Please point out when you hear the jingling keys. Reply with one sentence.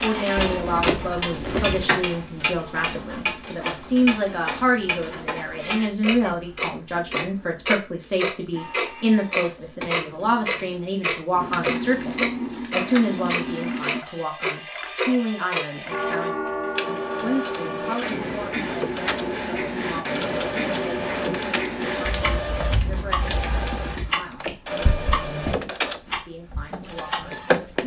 The jingling keys can be heard from 0.3 to 1.9 s, from 11.4 to 14.0 s and from 22.0 to 24.1 s.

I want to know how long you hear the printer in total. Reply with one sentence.
The printer can be heard for 28 seconds in total.